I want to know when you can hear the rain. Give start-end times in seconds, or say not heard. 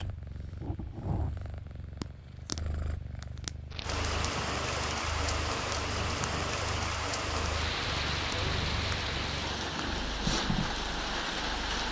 3.7-11.8.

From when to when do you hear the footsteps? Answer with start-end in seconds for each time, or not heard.
not heard.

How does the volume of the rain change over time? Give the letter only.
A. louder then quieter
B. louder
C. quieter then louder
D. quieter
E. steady
E.